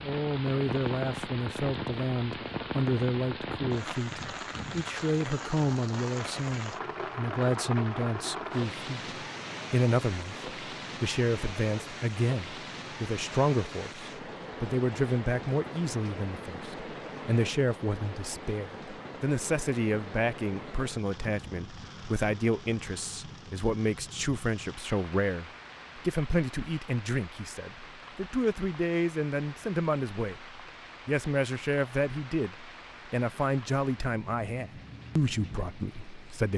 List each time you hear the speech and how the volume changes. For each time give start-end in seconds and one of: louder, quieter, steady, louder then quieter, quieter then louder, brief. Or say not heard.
0.0-36.5 steady.